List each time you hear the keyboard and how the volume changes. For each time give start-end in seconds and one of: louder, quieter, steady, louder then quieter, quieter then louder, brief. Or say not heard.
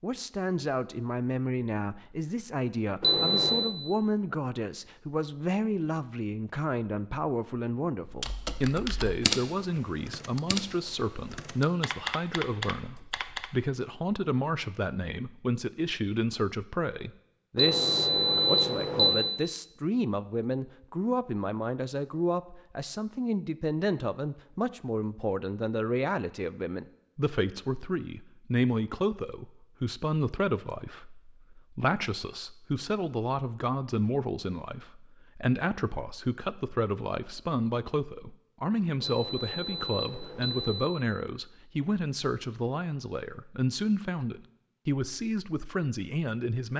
8.1-13.5 quieter then louder.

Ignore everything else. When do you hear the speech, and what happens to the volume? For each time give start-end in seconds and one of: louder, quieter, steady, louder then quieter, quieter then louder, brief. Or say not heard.
0.0-46.7 steady.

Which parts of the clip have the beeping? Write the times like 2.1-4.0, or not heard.
3.0-3.7, 17.6-19.4, 39.0-41.0.